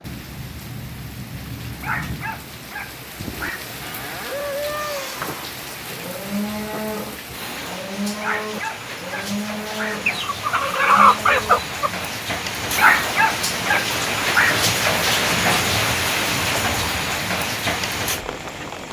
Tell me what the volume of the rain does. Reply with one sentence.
The loudness of the rain goes up.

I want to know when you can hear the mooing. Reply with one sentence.
You can hear the mooing from 3.1 to 11.6 s.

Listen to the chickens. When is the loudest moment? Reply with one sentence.
The volume of the chickens peaks at 11 seconds.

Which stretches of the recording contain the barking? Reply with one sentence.
The barking can be heard from 1.8 to 3.6 s, from 8.1 to 10.1 s and from 12.7 to 14.6 s.